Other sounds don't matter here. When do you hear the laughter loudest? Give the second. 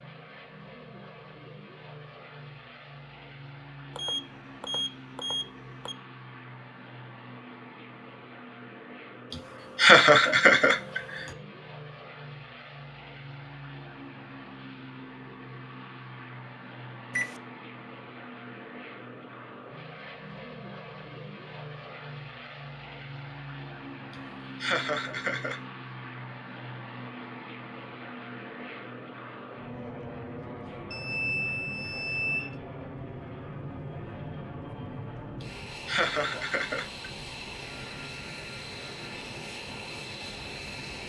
10 s.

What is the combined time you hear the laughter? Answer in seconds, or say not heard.
5 s.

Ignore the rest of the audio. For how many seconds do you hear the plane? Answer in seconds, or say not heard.
41 s.